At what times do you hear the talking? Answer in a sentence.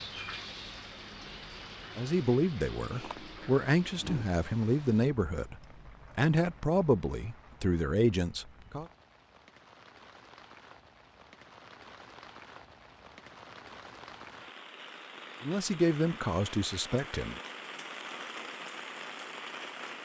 The talking can be heard from 1.9 to 5.5 s, from 6.2 to 8.8 s and from 15.4 to 17.4 s.